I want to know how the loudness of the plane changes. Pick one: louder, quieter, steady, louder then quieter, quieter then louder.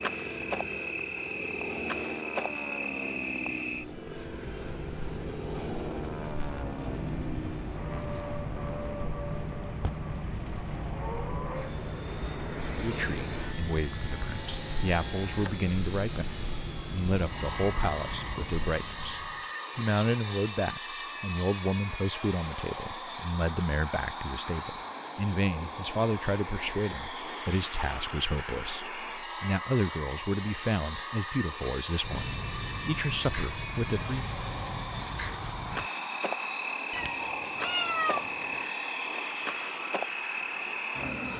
steady.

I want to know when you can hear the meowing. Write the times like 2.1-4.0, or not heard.
36.9-38.8.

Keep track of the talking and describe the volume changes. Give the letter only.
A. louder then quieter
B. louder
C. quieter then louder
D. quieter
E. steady
E.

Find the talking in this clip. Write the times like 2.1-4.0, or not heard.
12.8-34.2.